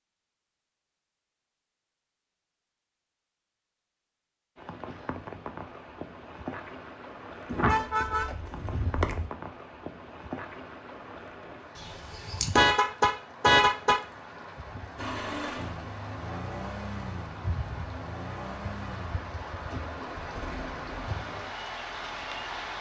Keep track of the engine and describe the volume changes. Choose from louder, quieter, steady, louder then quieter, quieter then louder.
quieter.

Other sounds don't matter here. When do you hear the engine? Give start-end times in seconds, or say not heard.
14.9-22.7.